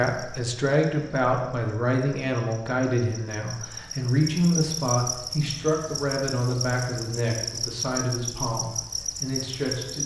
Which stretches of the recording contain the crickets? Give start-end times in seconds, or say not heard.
0.0-10.0.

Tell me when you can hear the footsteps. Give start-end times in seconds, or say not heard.
not heard.